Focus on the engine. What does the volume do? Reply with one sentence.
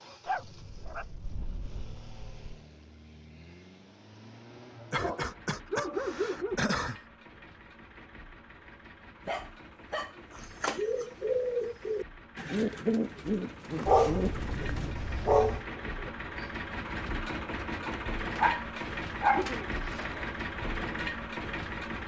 The volume of the engine goes up.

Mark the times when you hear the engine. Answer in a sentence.
You can hear the engine from 0.0 to 22.0 s.